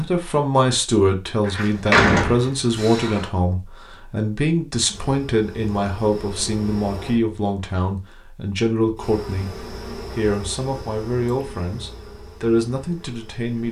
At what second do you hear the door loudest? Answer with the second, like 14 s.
2 s.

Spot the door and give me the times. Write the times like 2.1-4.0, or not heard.
1.4-3.3.